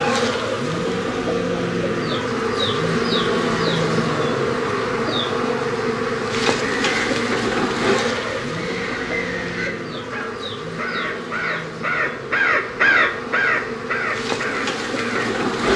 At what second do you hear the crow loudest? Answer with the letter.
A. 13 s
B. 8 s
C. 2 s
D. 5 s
A.